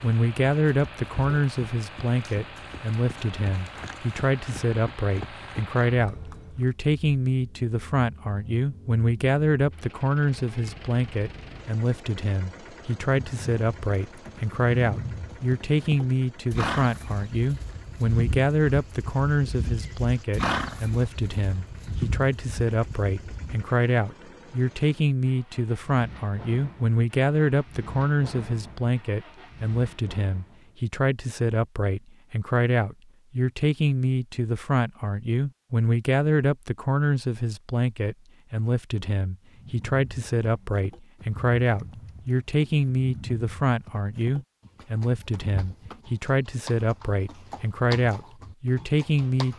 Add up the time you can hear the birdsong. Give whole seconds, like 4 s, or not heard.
not heard.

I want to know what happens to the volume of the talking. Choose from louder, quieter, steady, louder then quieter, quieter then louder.
steady.